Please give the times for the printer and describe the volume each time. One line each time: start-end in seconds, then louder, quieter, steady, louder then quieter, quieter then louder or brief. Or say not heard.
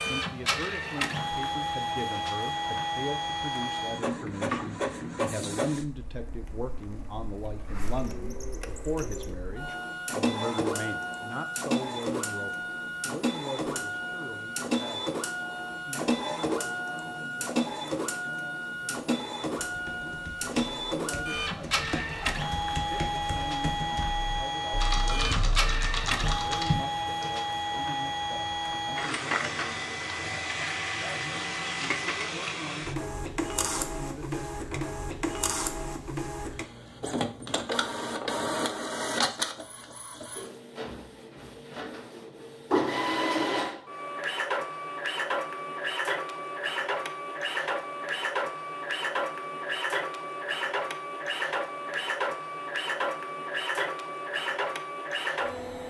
0.0-55.8 steady.